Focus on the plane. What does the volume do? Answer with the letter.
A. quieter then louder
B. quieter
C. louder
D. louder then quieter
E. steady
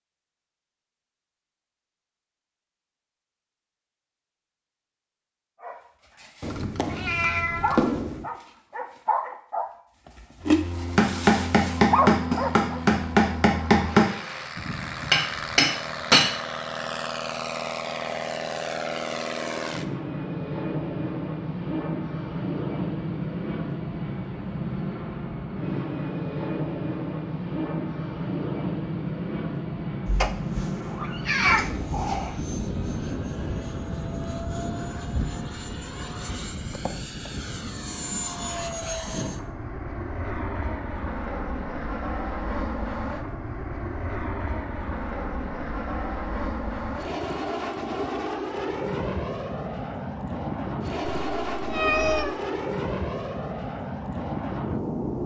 E.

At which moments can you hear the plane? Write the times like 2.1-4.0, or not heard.
10.4-55.2.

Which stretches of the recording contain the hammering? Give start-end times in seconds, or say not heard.
10.9-16.3.